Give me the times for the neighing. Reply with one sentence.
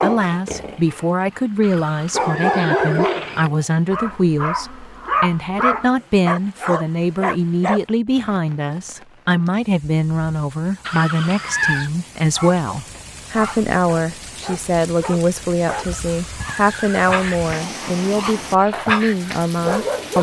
The neighing can be heard from 1.6 to 3.5 s, from 10.8 to 11.9 s and from 15.9 to 17.6 s.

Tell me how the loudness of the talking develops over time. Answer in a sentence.
The loudness of the talking stays about the same.